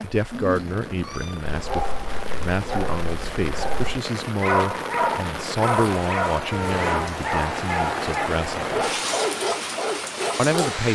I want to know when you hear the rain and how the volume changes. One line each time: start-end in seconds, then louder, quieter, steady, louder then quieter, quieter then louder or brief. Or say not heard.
0.0-10.9 louder.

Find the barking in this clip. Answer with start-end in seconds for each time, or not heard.
1.4-10.9.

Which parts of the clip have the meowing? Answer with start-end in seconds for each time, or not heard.
0.3-1.4, 6.5-7.2.